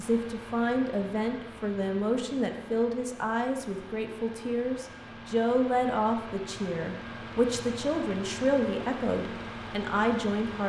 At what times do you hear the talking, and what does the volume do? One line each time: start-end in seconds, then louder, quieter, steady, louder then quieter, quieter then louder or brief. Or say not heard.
0.0-10.6 steady.